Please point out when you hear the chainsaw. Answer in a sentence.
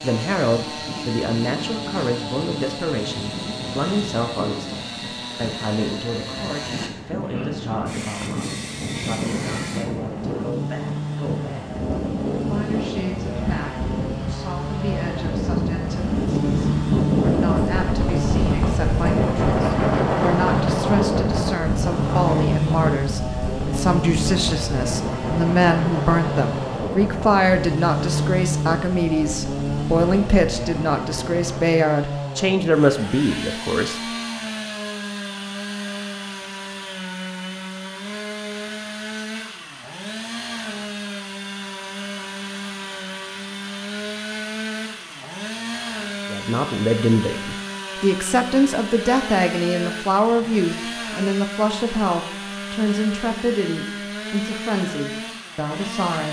You can hear the chainsaw from 0.0 to 56.2 s.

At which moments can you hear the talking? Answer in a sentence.
You can hear the talking from 0.0 to 34.0 s and from 46.3 to 56.2 s.